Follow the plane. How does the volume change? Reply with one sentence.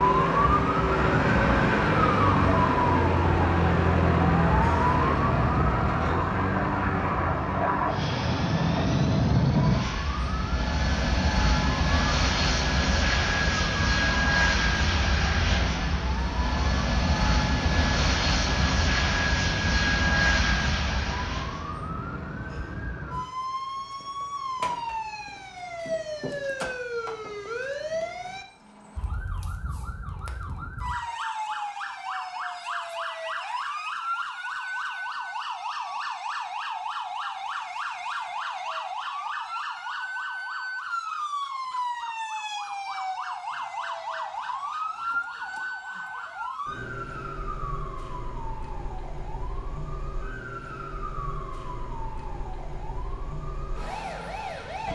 The loudness of the plane goes up.